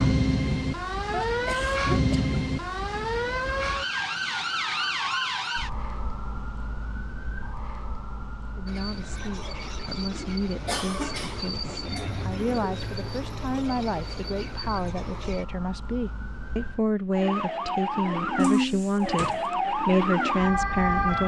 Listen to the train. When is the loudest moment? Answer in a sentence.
The loudest moment of the train is at 12 seconds.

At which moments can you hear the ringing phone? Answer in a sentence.
You can't hear the ringing phone here.